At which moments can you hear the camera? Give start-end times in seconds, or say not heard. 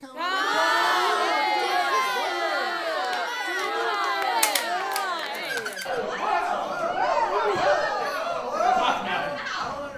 4.4-6.0.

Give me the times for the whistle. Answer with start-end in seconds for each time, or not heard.
not heard.